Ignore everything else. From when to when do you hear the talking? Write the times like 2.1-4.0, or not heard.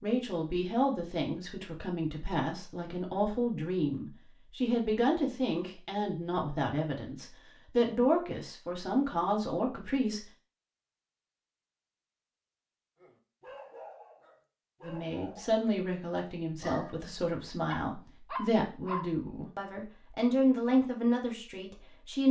0.0-10.2, 14.8-22.2.